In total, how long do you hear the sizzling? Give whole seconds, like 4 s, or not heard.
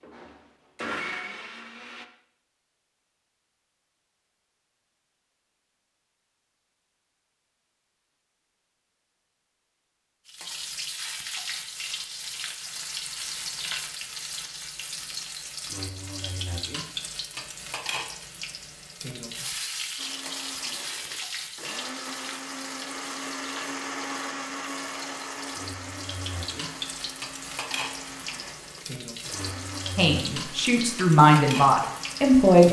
22 s.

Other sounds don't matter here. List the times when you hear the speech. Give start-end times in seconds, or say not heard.
29.9-32.6.